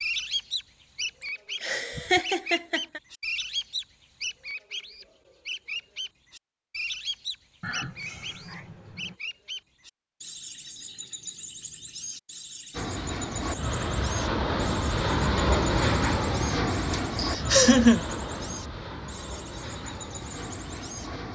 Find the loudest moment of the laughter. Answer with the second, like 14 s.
18 s.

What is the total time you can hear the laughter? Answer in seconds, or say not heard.
4 s.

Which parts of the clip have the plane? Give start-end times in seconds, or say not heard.
12.7-21.3.